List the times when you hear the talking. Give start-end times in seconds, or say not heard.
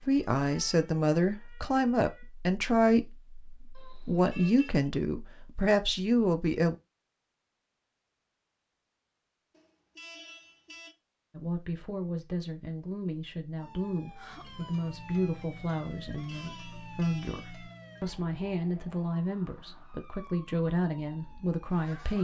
0.1-6.8, 11.3-22.1.